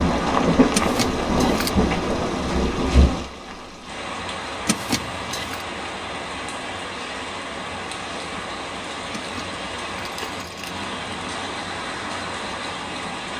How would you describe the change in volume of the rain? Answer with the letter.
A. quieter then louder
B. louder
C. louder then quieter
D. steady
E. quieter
E.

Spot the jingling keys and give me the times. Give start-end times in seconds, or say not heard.
0.7-1.7, 4.7-5.7, 9.2-10.8.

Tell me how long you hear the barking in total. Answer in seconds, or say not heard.
not heard.